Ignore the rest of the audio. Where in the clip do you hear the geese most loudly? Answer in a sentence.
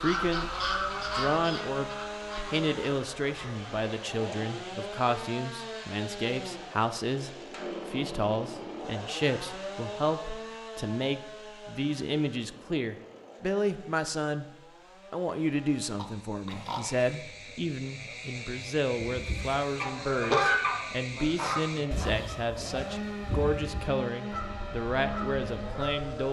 The volume of the geese peaks at 20 seconds.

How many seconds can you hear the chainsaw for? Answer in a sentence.
The chainsaw can be heard for 26 seconds in total.